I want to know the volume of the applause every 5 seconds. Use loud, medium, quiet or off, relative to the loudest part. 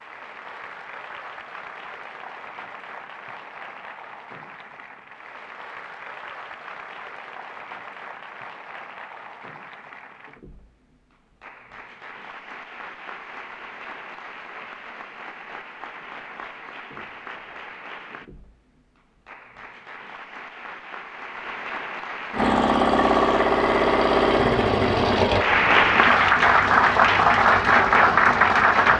quiet, quiet, quiet, quiet, quiet, loud.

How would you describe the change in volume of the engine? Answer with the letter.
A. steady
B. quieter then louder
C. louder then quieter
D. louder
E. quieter
E.